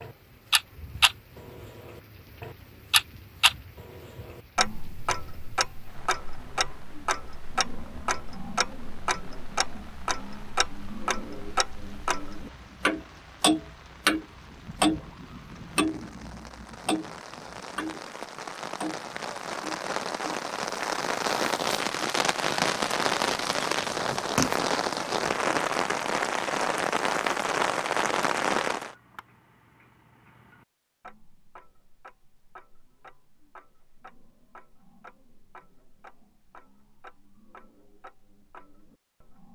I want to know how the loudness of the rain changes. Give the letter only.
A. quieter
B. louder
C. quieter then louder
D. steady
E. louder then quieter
B.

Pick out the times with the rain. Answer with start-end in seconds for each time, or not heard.
0.0-28.9.